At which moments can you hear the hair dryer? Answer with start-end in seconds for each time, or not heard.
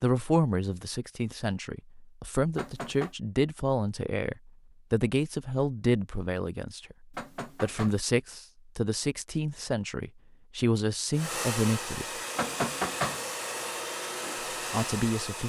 11.1-15.4.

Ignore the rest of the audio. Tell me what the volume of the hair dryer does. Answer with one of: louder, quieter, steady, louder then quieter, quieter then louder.
steady.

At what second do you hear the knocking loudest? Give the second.
13 s.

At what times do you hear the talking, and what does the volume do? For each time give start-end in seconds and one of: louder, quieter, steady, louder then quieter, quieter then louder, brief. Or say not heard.
0.0-12.2 steady
14.7-15.4 brief.